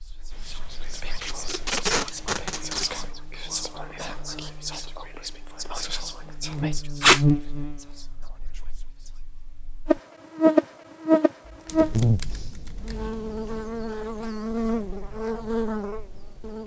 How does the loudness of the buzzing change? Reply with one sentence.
The volume of the buzzing goes up, then down.